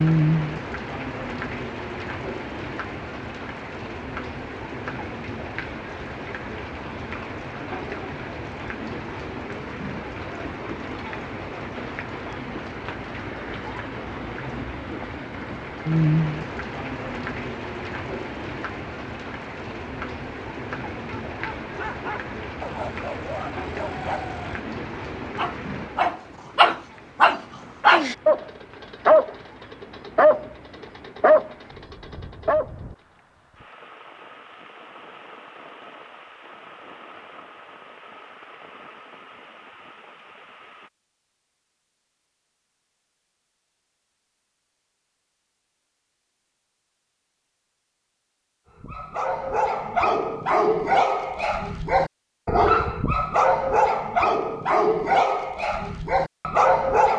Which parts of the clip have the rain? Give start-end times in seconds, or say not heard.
0.0-40.9.